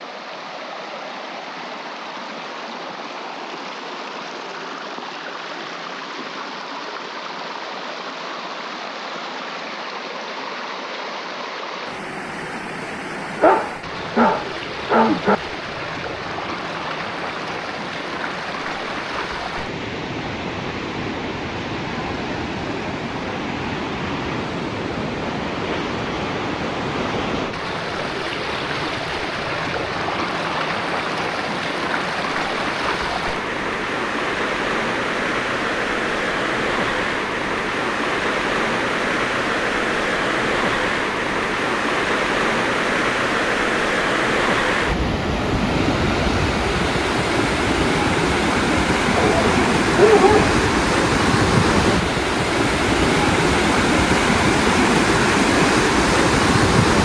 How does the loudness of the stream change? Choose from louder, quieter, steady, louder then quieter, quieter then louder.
louder.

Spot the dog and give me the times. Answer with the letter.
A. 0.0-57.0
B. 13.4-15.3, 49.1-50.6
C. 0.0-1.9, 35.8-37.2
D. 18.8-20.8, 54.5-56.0
B.